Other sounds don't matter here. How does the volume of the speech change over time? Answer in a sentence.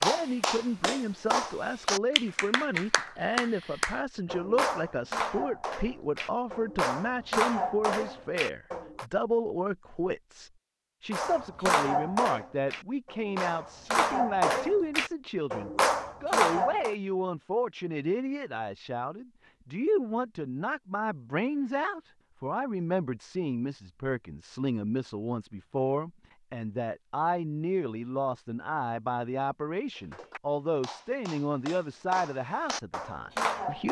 The loudness of the speech stays about the same.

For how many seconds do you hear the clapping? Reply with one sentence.
The clapping can be heard for 19 seconds in total.